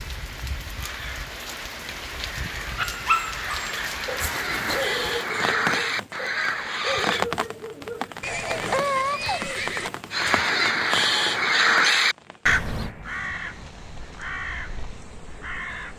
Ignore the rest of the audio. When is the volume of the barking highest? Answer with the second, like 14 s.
3 s.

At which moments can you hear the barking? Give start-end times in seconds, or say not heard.
2.8-8.2.